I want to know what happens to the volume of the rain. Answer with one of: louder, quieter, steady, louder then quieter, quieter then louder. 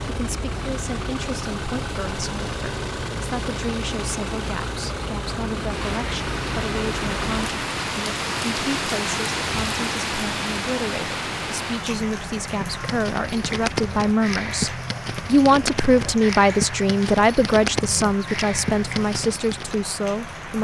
quieter.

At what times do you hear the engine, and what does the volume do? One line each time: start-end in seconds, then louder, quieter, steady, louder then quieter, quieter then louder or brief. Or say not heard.
0.0-7.5 steady.